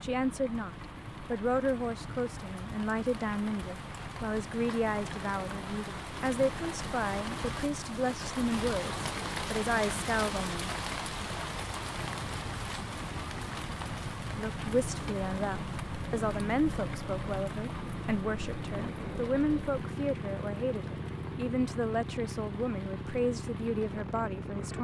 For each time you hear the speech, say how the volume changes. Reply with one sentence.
The speech can be heard from 0.0 to 10.7 s, at a steady volume; and from 14.3 to 24.7 s, at a steady volume.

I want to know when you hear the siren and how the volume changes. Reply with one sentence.
The siren can't be heard in this clip.